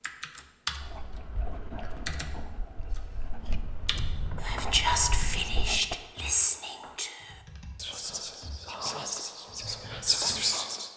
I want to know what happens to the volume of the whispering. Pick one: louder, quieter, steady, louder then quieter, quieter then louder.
quieter then louder.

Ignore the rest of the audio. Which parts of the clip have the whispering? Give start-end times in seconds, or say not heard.
4.4-10.9.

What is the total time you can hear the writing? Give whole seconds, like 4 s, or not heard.
5 s.